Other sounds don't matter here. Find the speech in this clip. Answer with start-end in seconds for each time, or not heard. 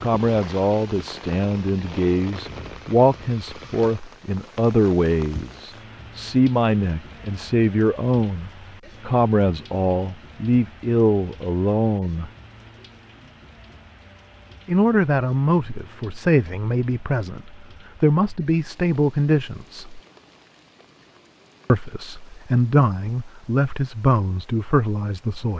0.0-12.3, 14.7-20.0, 21.6-25.5.